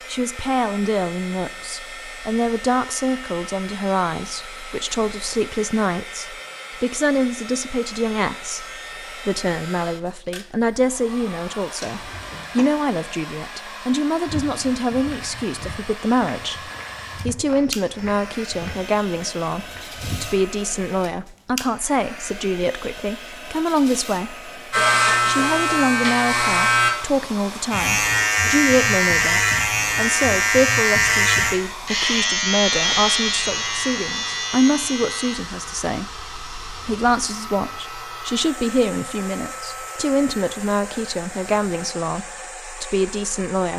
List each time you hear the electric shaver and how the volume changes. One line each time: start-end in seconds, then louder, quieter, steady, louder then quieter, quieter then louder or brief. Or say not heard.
24.7-42.0 quieter.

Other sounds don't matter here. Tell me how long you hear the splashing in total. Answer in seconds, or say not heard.
not heard.